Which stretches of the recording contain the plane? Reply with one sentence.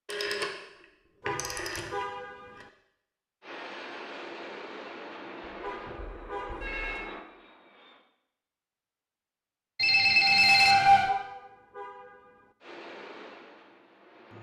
You can hear the plane from 3.4 to 8.1 s and from 12.6 to 14.3 s.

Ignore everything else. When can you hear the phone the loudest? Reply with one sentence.
The volume of the phone peaks at 11 seconds.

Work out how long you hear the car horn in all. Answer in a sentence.
You can hear the car horn for 4 seconds altogether.